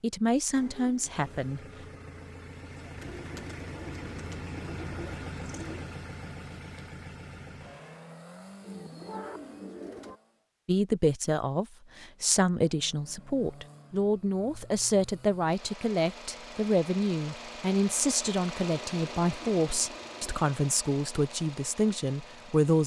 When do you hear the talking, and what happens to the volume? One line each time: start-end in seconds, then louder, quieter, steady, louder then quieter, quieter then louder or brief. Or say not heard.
0.0-1.6 brief
10.7-22.8 steady.